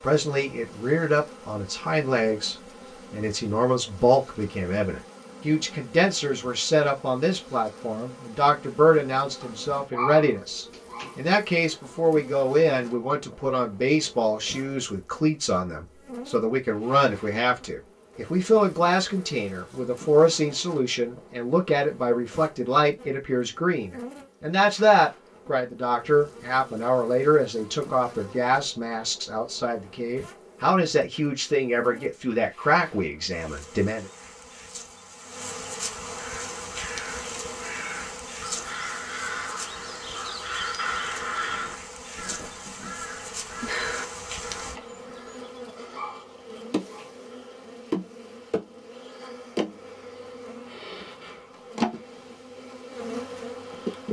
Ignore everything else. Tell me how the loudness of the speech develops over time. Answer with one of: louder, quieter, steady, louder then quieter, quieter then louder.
steady.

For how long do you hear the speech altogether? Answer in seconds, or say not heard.
34 s.